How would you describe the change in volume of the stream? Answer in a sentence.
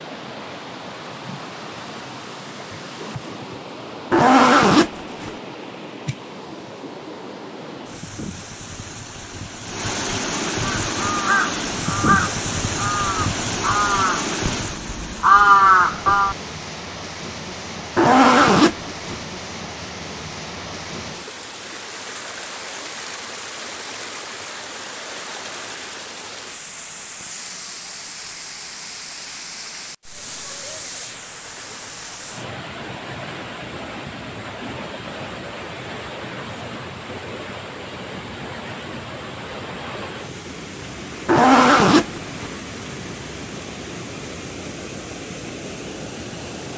The loudness of the stream goes up, then down.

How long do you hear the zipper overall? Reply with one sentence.
You can hear the zipper for 4 seconds altogether.